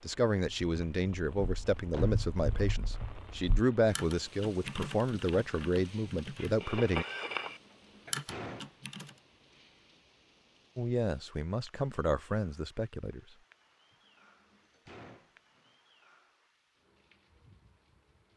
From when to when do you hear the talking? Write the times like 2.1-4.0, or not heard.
0.0-7.0, 10.8-13.4.